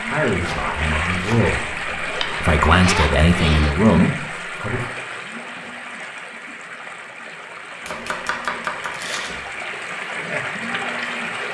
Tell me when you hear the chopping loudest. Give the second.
9 s.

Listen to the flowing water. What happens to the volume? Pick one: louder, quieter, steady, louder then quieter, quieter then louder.
quieter then louder.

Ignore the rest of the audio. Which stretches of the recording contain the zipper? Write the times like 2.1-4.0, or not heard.
2.2-3.8.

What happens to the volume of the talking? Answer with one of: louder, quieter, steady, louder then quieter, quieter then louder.
louder.